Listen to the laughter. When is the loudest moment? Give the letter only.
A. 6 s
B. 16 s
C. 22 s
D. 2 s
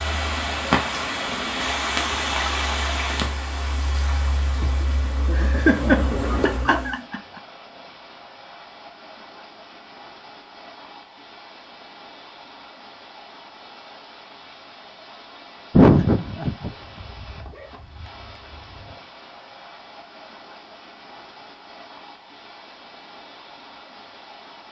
B.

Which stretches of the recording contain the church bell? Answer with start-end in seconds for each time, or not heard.
not heard.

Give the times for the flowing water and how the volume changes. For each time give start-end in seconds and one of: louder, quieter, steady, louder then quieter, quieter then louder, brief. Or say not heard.
0.0-24.6 quieter.